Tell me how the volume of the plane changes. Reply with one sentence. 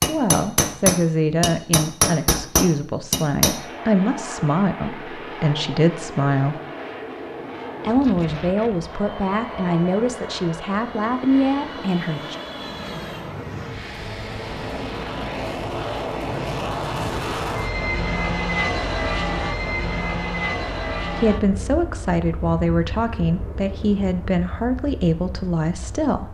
The loudness of the plane goes up, then down.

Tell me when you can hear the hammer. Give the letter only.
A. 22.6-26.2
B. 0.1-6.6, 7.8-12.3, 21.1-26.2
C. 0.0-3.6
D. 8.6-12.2
C.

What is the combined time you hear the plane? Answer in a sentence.
The plane can be heard for 23 seconds in total.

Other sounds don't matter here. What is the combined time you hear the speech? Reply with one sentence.
You can hear the speech for 16 seconds altogether.